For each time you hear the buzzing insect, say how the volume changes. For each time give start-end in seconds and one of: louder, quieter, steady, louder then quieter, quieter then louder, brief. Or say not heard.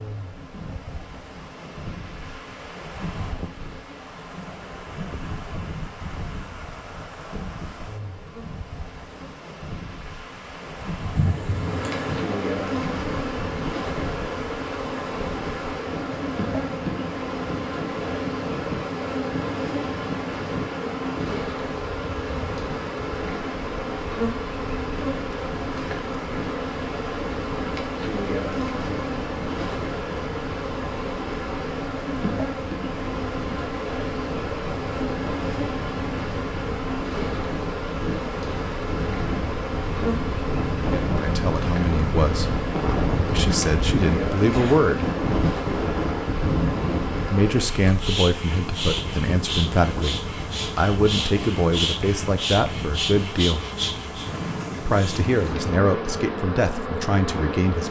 0.0-57.8 louder.